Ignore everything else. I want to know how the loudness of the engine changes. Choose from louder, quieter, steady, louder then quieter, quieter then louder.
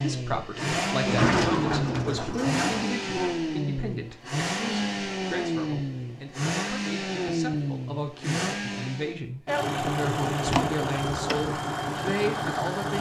steady.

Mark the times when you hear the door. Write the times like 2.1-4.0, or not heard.
1.1-2.9, 10.4-11.4.